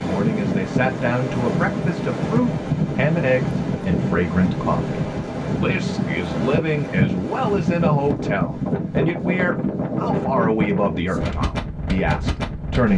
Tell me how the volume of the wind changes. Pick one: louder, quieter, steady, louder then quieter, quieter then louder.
steady.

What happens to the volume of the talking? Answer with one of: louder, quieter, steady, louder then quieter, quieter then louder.
steady.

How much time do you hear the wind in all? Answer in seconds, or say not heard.
13 s.